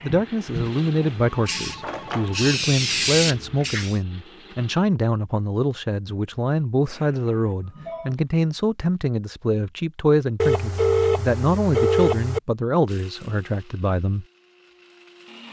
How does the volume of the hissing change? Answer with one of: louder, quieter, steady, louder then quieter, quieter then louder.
quieter then louder.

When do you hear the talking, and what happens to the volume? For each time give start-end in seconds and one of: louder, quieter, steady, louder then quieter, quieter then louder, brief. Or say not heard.
0.0-14.2 steady.